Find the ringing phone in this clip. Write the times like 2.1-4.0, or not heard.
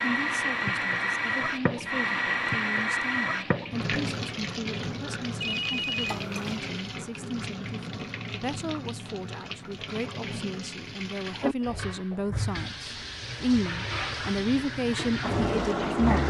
5.4-6.6.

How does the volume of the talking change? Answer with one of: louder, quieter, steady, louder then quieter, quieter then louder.
louder.